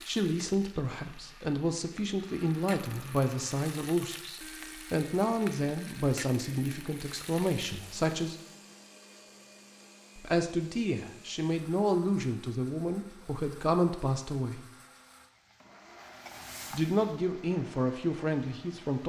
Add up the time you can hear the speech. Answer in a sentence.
The speech can be heard for 15 seconds in total.